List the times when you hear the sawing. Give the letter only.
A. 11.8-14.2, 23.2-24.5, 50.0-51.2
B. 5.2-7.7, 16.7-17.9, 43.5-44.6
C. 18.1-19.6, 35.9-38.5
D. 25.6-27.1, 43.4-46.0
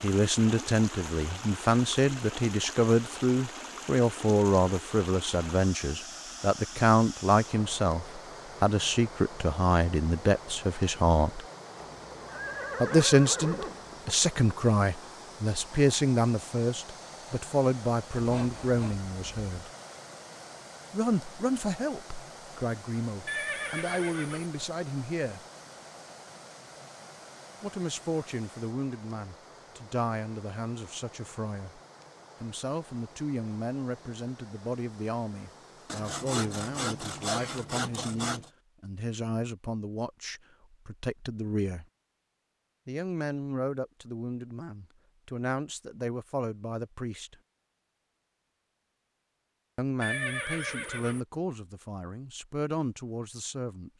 C.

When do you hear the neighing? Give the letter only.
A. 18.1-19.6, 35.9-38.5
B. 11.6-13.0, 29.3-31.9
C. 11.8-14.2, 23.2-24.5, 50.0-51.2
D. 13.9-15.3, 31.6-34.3
C.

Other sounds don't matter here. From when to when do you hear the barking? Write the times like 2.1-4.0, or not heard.
not heard.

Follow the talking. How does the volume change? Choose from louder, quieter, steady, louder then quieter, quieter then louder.
quieter.